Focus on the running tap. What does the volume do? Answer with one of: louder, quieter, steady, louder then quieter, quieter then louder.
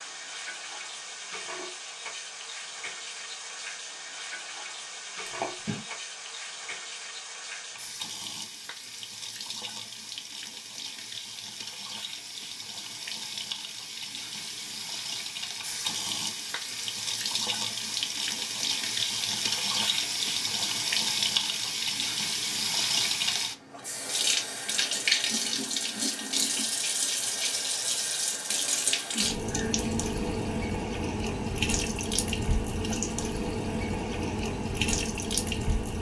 louder.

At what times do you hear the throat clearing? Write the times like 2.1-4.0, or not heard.
5.2-5.9.